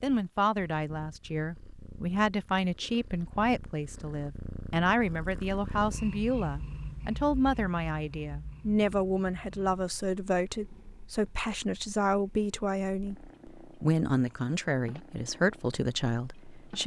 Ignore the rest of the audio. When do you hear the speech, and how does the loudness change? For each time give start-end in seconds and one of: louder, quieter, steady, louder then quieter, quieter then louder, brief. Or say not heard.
0.0-16.8 steady.